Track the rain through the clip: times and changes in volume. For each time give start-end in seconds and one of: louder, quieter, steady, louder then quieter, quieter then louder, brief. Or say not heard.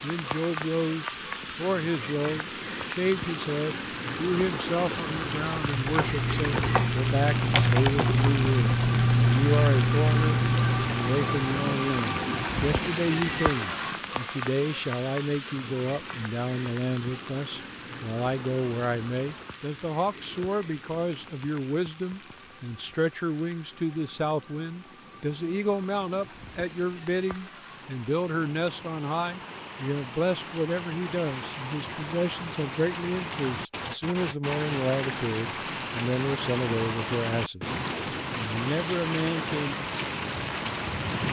0.0-41.2 quieter then louder.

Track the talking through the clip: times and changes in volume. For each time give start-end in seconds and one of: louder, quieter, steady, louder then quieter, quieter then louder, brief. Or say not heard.
0.0-37.8 steady
38.4-39.8 brief.